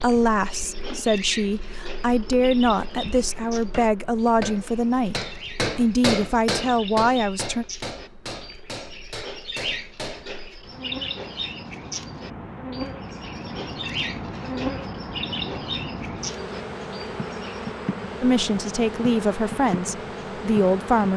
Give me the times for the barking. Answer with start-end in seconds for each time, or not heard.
not heard.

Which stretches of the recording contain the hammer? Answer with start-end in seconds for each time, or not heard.
3.5-10.4.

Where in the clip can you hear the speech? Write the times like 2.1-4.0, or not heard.
0.0-7.7, 18.2-21.1.